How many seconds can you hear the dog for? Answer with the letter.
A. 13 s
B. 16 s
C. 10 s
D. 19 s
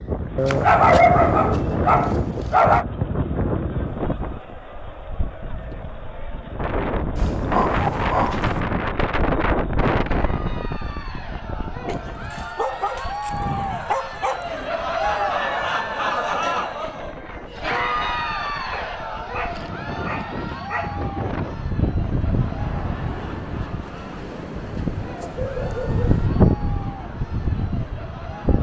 C.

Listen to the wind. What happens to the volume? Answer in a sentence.
The volume of the wind goes down, then up.